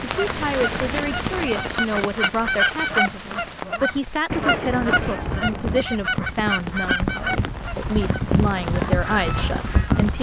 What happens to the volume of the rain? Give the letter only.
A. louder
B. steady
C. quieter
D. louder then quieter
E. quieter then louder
E.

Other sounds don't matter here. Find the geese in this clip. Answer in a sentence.
The geese can be heard from 0.0 to 10.1 s.